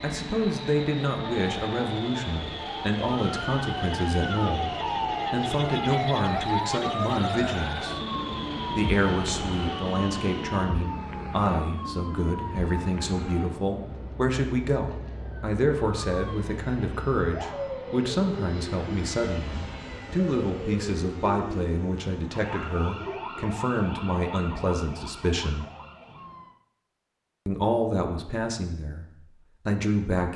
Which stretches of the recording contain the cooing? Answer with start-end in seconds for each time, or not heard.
not heard.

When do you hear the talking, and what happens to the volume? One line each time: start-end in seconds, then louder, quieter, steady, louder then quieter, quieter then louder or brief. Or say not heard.
0.0-8.0 steady
8.8-25.6 steady
27.4-30.3 brief.